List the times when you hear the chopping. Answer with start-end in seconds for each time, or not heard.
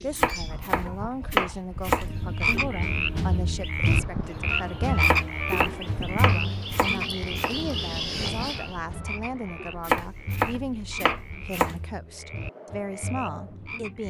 0.1-2.6, 5.0-7.5, 9.8-11.8.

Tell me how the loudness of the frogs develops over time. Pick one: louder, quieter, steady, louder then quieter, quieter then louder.
quieter.